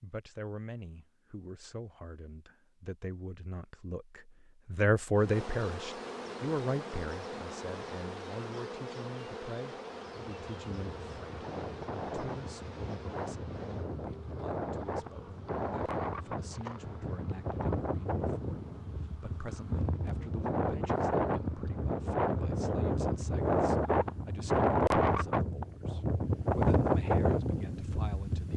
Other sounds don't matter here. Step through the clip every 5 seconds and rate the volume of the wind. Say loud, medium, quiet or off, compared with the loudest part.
off, off, medium, medium, loud, loud.